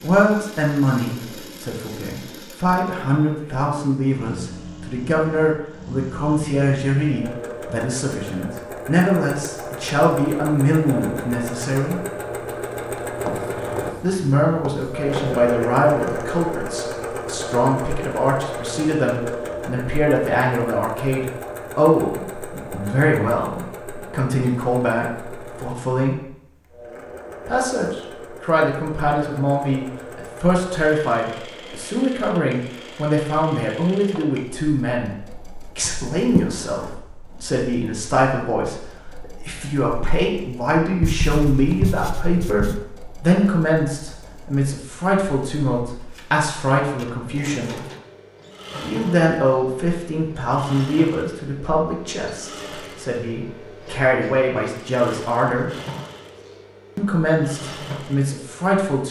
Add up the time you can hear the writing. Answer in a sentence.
You can hear the writing for 5 seconds altogether.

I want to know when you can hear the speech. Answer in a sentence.
The speech can be heard from 0.0 to 12.0 s, from 14.0 to 26.2 s, from 27.4 to 35.1 s, from 35.8 to 47.8 s, from 48.8 to 55.7 s and from 57.0 to 59.0 s.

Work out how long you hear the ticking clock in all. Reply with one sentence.
You can't hear the ticking clock here.